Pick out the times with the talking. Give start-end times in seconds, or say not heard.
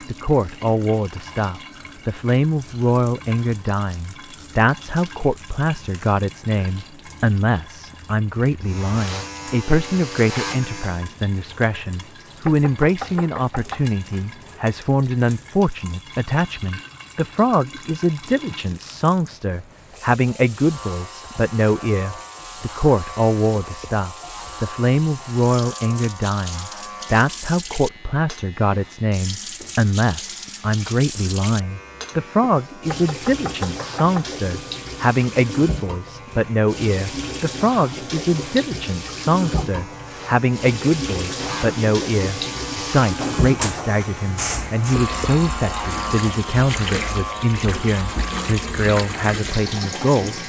0.1-50.4.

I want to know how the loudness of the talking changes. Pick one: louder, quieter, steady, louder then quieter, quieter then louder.
steady.